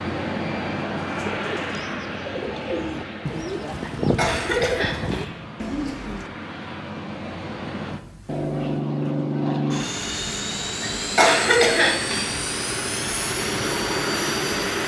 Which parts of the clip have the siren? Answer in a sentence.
The siren can't be heard in this clip.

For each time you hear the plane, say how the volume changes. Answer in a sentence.
You can hear the plane from 0.0 to 14.8 s, getting quieter then louder.